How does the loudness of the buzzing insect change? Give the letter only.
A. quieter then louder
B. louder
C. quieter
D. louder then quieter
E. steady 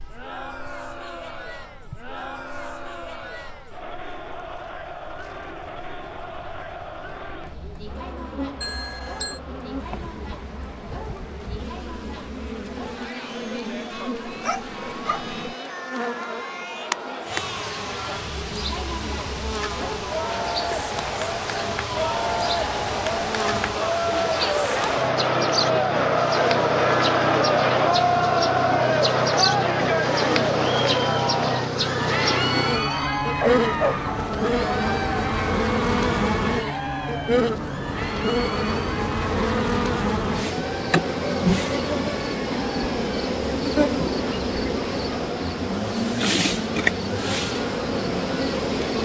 B.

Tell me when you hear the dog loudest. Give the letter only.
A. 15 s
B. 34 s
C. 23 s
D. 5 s
B.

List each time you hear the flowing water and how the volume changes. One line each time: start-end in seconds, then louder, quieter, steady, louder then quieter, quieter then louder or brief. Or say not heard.
not heard.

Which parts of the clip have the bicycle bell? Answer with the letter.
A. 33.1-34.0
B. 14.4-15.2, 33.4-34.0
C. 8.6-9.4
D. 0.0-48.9
C.